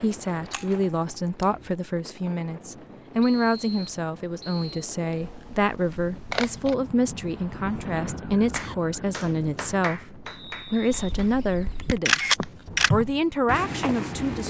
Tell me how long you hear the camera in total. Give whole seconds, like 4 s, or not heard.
5 s.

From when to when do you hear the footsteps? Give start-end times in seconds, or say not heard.
0.0-1.8, 12.3-14.4.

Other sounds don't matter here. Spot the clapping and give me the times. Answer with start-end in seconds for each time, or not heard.
8.5-11.7.